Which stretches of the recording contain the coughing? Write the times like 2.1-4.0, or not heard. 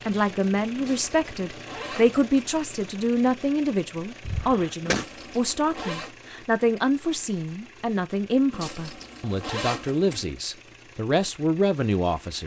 4.2-5.0.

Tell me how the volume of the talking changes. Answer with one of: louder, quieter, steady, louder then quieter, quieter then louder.
steady.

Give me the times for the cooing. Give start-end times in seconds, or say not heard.
not heard.